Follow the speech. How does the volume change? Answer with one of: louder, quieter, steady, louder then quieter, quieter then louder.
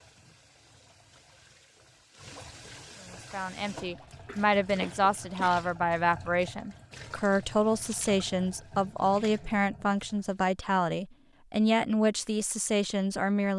steady.